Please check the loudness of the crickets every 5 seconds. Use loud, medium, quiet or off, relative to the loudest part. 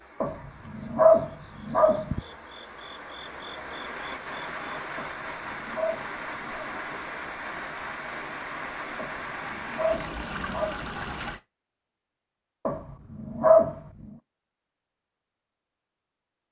loud, medium, off, off.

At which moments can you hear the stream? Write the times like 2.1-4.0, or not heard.
0.0-11.4.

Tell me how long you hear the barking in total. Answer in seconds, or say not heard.
7 s.